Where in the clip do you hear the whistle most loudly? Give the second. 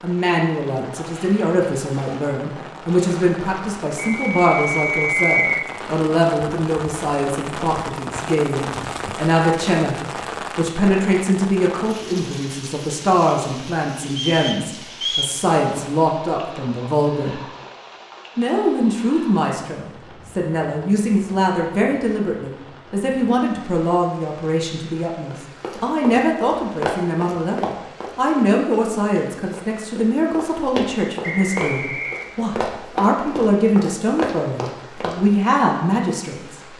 5 s.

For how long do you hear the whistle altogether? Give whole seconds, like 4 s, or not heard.
4 s.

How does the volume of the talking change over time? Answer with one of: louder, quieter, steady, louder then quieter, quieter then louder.
steady.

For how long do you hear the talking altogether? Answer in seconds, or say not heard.
35 s.